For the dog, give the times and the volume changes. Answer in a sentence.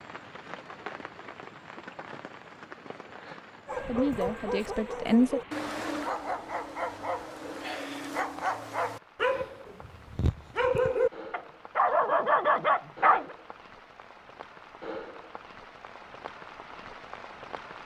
You can hear the dog from 3.6 to 13.3 s, getting louder.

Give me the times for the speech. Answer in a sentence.
You can hear the speech from 3.8 to 5.4 s.